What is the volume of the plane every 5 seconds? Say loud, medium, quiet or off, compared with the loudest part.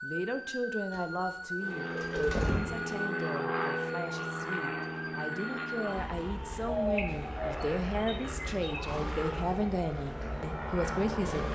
loud, medium, loud.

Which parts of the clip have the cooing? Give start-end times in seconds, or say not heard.
0.9-2.9, 6.8-8.8.